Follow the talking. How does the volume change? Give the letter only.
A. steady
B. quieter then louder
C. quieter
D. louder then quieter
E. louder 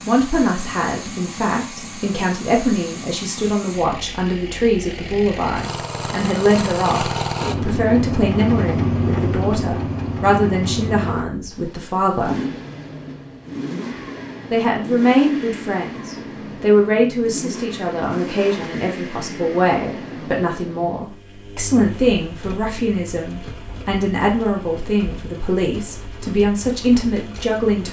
A.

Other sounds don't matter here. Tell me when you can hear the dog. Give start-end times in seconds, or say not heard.
not heard.